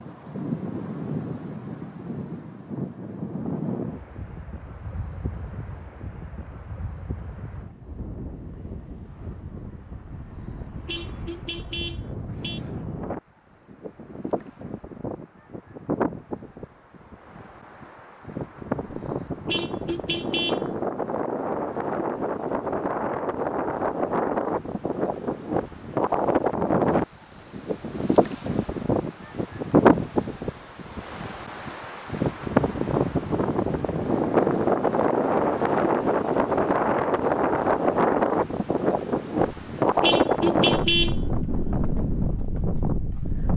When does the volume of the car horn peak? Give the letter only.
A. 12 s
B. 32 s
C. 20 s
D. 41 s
D.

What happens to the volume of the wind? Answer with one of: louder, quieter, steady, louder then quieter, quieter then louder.
louder.